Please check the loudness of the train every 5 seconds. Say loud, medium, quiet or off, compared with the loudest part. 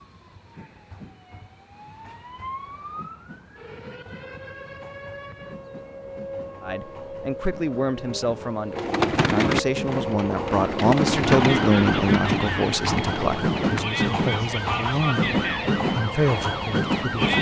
quiet, quiet, loud, loud.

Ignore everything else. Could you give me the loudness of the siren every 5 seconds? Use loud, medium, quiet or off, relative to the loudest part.
quiet, medium, loud, loud.